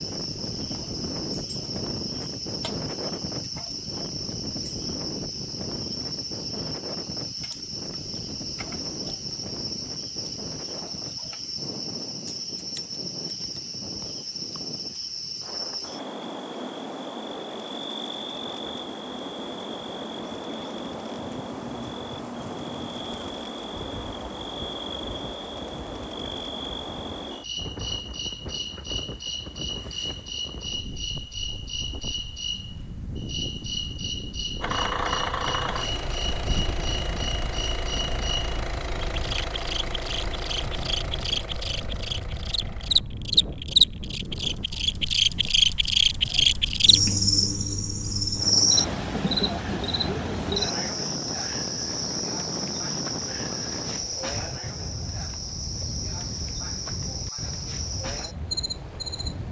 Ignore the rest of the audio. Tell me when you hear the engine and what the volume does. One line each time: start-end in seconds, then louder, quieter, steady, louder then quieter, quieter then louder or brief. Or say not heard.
34.6-43.0 quieter.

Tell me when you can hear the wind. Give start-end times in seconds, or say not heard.
0.0-59.4.